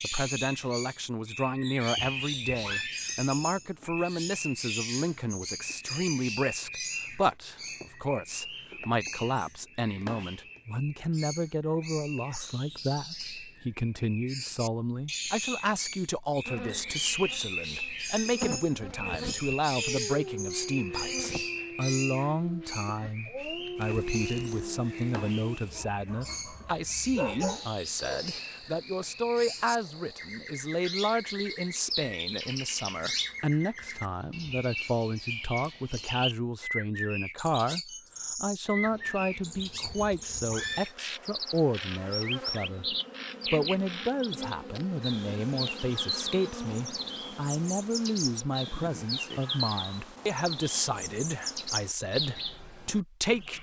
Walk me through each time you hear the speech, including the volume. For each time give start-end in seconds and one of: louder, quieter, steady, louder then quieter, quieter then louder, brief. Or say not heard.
0.0-53.5 steady.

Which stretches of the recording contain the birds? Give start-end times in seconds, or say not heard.
0.0-53.5.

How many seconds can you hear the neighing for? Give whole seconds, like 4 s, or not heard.
2 s.